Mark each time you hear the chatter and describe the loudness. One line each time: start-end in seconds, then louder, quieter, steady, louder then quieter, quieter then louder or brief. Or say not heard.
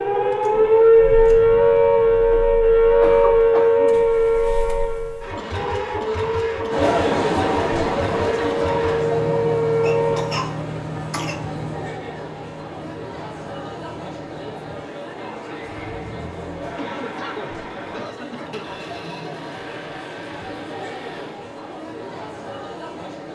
6.7-23.3 quieter.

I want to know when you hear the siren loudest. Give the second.
1 s.